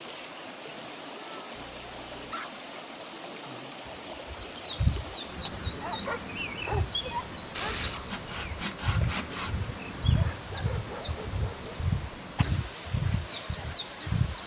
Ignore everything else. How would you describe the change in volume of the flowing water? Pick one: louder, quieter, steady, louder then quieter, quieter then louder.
steady.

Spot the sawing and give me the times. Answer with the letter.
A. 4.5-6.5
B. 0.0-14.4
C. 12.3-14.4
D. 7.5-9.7
D.